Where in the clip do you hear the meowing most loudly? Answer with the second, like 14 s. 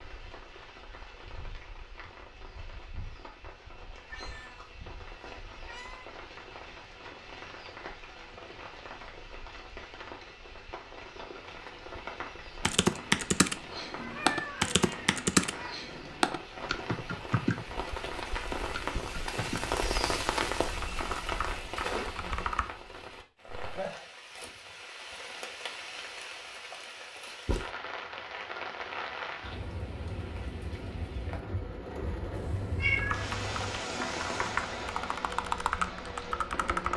33 s.